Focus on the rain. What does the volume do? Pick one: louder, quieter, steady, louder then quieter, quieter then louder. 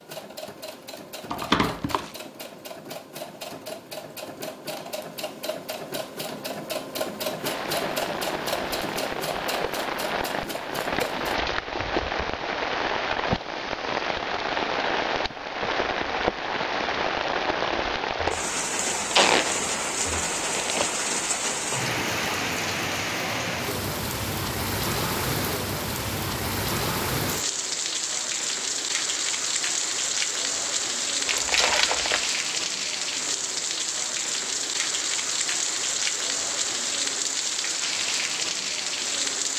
steady.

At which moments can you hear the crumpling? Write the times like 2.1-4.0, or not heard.
1.3-2.1, 18.2-20.9, 31.2-32.2.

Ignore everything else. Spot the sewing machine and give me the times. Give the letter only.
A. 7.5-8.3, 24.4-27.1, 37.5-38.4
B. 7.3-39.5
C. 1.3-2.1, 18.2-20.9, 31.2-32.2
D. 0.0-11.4
D.